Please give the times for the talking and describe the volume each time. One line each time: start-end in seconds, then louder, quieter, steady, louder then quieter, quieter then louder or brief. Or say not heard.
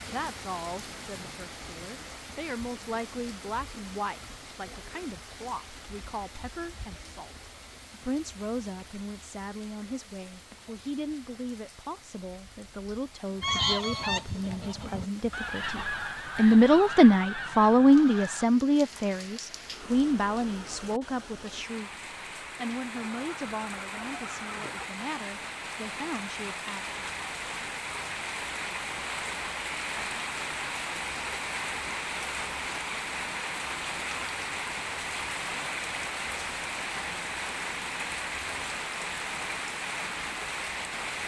0.1-27.0 louder then quieter.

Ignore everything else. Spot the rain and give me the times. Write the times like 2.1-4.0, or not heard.
0.0-41.2.